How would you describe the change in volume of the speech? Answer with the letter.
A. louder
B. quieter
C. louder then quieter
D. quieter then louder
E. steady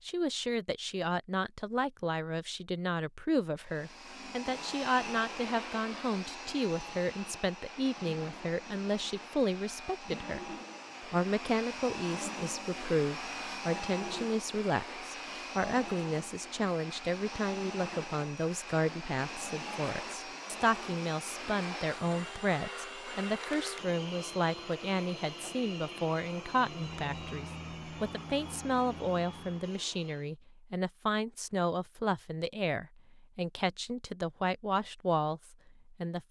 E.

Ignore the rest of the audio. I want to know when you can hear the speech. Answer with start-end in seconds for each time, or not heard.
0.1-36.2.